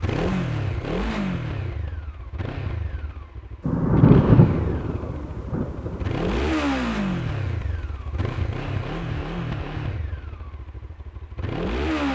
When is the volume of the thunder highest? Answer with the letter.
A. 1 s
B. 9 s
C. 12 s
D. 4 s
D.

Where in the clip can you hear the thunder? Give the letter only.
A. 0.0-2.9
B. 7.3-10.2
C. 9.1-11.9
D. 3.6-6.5
D.